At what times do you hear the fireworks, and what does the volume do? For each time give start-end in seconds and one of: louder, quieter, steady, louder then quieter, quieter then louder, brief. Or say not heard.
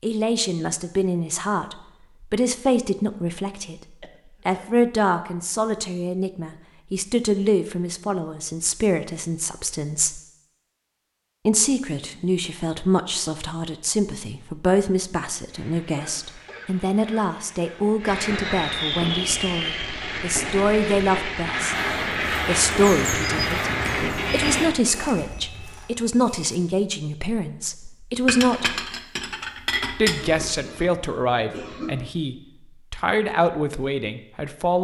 15.4-24.7 louder.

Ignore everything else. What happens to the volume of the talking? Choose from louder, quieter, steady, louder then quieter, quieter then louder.
steady.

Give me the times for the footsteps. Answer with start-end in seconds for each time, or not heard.
21.7-26.8.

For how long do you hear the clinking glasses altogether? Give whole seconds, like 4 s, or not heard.
2 s.